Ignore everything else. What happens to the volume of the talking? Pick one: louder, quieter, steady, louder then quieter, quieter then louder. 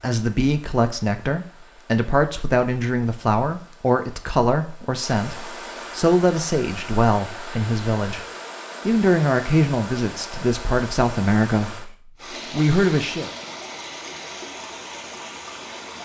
steady.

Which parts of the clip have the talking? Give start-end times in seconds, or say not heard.
0.0-8.2, 8.8-13.3.